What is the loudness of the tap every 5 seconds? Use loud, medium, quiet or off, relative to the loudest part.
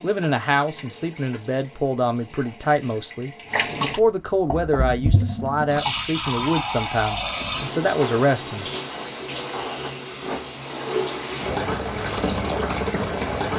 medium, loud, loud.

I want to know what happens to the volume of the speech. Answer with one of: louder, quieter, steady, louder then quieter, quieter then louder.
steady.